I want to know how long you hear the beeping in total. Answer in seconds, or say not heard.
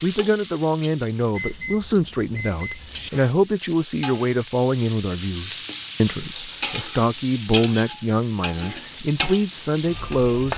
2 s.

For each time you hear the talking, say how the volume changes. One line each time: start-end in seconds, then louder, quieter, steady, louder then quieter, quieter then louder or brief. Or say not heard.
0.0-10.5 steady.